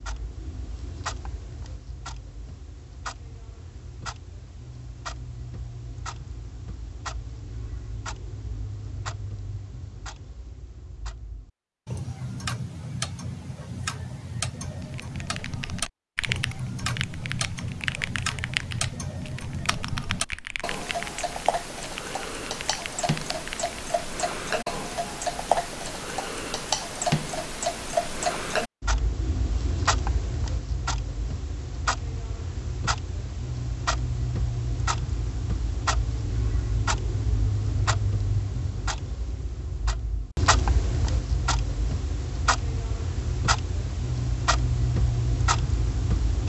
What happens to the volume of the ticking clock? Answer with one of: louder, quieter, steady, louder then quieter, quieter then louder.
louder.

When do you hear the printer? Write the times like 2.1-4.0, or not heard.
not heard.